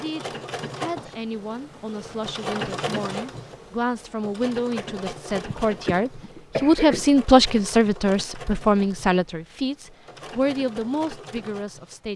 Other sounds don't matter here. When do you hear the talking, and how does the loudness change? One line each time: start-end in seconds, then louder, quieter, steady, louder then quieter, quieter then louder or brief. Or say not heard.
0.0-12.1 louder then quieter.